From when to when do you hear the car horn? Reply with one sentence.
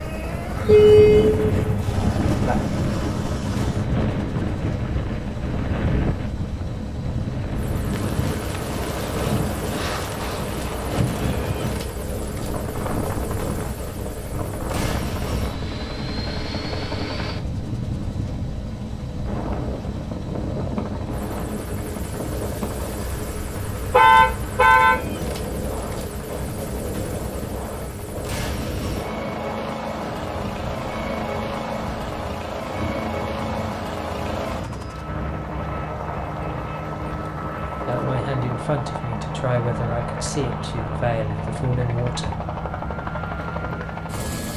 You can hear the car horn from 0.7 to 2.5 s and from 23.9 to 24.9 s.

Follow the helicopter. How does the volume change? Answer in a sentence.
The volume of the helicopter stays about the same.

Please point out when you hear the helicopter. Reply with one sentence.
You can hear the helicopter from 0.0 to 44.5 s.